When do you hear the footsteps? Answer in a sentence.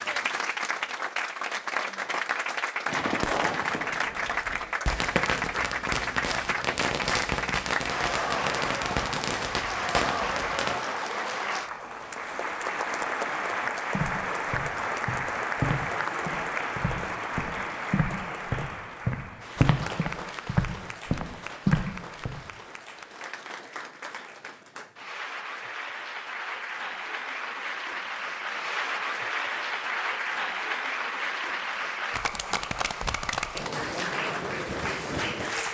The footsteps can be heard from 13.9 to 22.4 s.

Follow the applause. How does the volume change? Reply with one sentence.
The volume of the applause goes down, then up.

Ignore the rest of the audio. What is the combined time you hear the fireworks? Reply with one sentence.
The fireworks can be heard for 8 seconds in total.